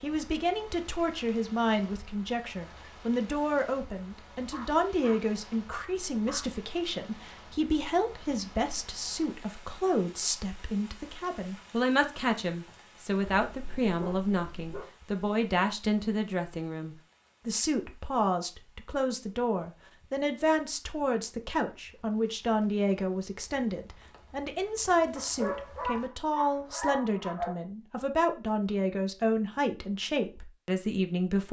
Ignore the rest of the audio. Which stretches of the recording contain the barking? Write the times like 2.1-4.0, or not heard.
4.5-6.5, 13.2-14.9, 25.1-27.6.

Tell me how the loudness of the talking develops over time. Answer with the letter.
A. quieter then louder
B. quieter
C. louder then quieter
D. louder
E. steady
E.